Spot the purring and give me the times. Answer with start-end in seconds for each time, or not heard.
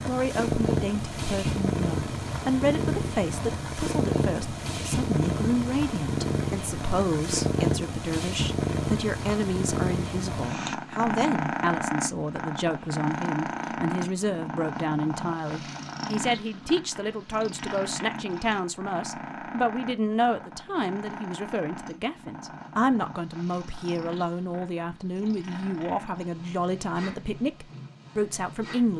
0.0-28.9.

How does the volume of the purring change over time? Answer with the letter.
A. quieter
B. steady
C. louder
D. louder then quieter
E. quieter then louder
A.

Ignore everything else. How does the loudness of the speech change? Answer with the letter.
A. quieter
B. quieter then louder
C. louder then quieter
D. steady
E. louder
D.